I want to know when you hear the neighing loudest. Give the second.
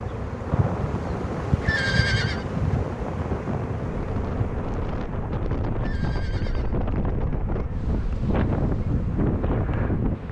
2 s.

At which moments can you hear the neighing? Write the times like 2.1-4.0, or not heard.
1.6-2.5, 5.8-6.8.